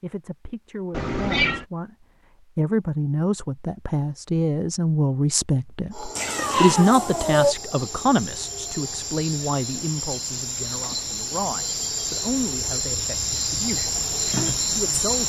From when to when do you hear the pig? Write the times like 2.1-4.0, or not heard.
not heard.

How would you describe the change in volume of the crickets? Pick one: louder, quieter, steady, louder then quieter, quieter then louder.
louder.